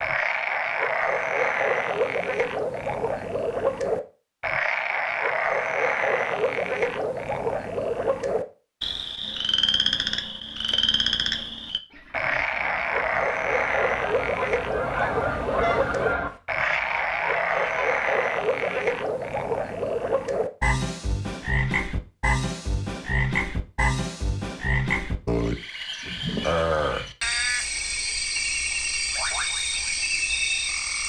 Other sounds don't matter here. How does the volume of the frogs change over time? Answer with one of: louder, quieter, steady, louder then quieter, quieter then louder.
steady.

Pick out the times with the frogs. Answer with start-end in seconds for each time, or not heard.
0.0-31.0.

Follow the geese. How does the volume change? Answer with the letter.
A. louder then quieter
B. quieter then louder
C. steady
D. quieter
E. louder
A.